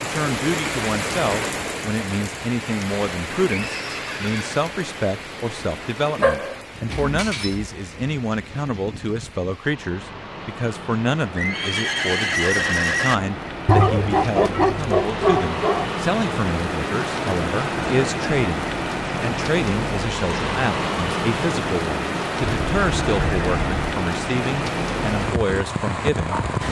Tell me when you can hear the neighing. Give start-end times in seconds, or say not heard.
3.5-4.6, 11.3-13.2, 22.6-23.7.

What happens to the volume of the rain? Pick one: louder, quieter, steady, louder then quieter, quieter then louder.
quieter then louder.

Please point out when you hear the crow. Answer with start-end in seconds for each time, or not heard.
not heard.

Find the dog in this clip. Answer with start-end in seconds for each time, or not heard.
6.2-7.7, 13.7-15.9.